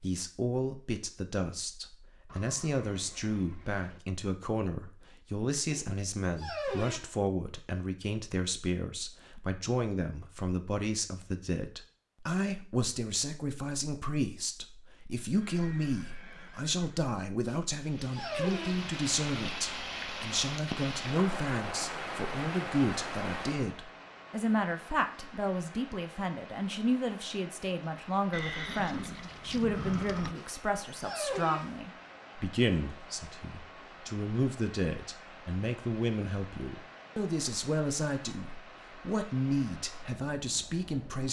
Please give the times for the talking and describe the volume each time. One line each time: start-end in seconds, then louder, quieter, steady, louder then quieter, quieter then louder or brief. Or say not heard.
0.0-41.2 steady.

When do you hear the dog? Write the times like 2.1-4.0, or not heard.
5.7-7.1, 17.4-18.9, 30.3-31.7.